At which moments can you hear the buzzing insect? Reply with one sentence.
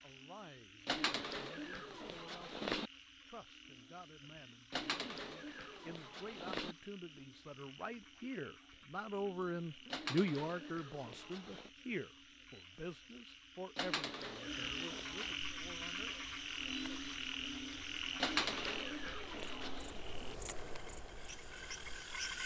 The buzzing insect can be heard from 15.4 to 22.4 s.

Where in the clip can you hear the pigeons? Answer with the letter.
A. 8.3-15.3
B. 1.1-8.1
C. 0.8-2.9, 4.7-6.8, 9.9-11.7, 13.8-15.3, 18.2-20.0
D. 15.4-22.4
C.